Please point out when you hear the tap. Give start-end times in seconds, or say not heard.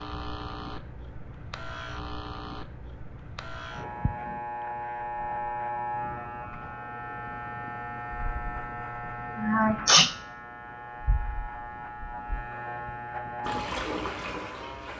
13.4-14.9.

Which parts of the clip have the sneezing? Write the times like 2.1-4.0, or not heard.
9.3-10.1.